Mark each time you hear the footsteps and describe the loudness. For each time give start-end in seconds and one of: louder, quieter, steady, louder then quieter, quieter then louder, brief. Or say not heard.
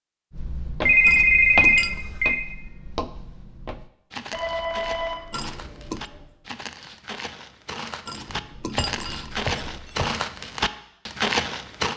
0.3-11.9 quieter then louder.